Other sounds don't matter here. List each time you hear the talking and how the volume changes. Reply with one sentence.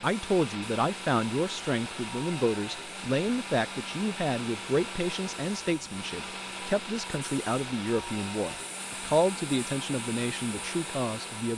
The talking can be heard from 0.0 to 11.5 s, at a steady volume.